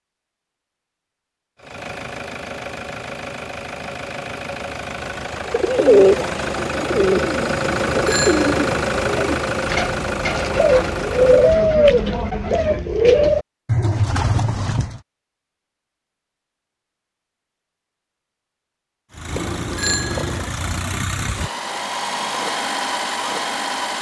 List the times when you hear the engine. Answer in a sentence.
The engine can be heard from 1.6 to 11.7 s and from 19.1 to 23.9 s.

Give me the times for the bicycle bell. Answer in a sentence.
The bicycle bell can be heard from 7.7 to 8.8 s and from 19.3 to 20.5 s.